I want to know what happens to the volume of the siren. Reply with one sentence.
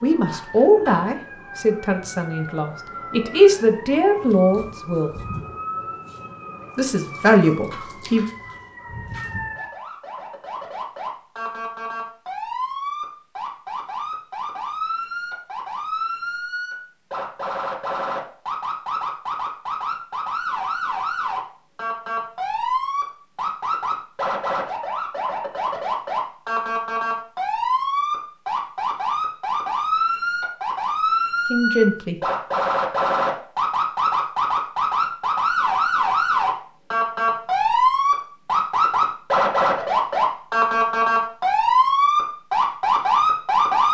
The loudness of the siren goes up.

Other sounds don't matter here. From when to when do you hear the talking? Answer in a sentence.
You can hear the talking from 0.0 to 5.1 s, from 6.8 to 8.2 s and from 31.5 to 32.1 s.